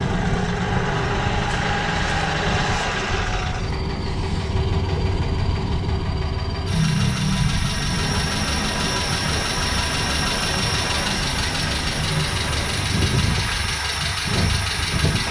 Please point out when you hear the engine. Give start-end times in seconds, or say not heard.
0.0-15.2.